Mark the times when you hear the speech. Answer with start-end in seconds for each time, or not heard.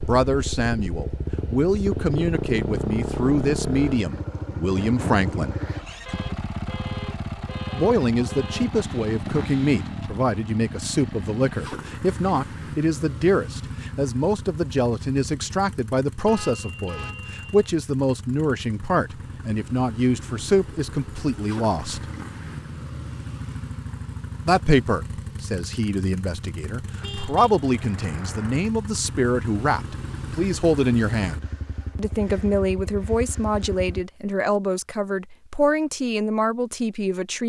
0.0-5.5, 7.7-22.1, 24.4-37.4.